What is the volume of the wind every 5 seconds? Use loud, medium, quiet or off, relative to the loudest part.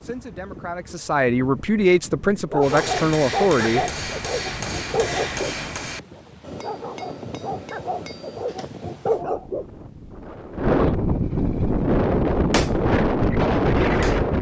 quiet, quiet, loud.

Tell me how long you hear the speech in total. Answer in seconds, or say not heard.
4 s.